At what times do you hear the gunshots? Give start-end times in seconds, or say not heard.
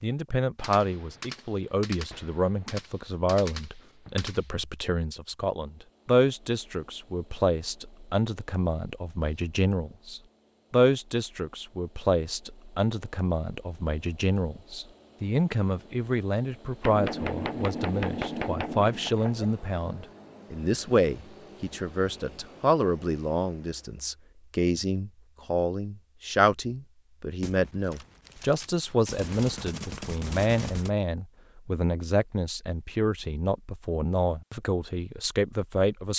0.6-4.5, 16.8-19.4, 27.4-30.9.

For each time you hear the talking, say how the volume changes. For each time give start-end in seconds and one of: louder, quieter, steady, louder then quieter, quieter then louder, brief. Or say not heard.
0.0-36.1 steady.